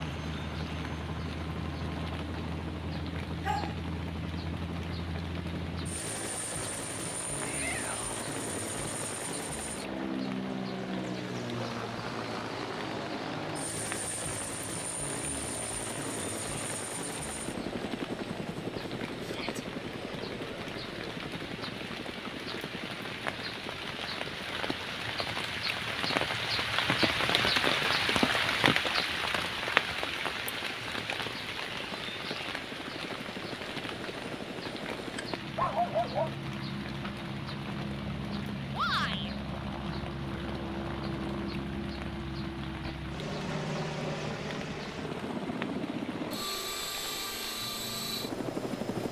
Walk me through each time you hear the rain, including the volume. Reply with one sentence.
The rain can be heard from 0.0 to 49.0 s, getting louder then quieter.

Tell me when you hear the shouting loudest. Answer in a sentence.
The loudest moment of the shouting is at 39 seconds.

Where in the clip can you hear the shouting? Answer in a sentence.
You can hear the shouting from 7.5 to 8.2 s, from 19.2 to 19.6 s and from 38.7 to 39.3 s.